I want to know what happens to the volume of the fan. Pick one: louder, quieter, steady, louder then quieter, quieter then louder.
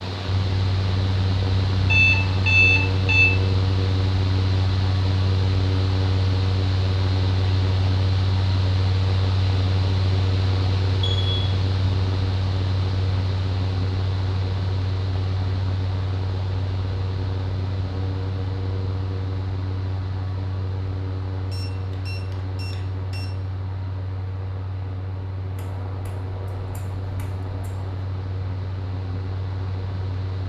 quieter.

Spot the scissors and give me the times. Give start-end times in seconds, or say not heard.
25.6-28.0.